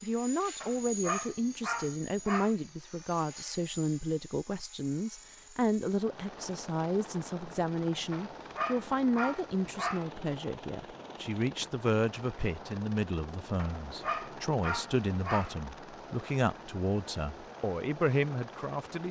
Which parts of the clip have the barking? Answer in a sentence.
You can hear the barking from 0.6 to 2.5 s, from 8.1 to 10.1 s and from 13.6 to 15.6 s.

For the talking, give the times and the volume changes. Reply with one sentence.
You can hear the talking from 0.0 to 19.0 s, at a steady volume.